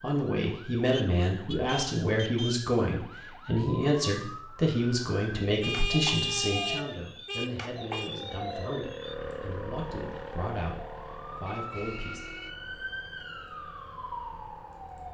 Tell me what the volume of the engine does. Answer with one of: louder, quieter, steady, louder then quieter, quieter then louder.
quieter.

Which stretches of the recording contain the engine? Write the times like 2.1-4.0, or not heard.
7.6-15.0.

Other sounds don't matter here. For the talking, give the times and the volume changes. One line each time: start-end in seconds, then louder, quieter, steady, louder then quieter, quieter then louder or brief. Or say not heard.
0.0-12.2 quieter.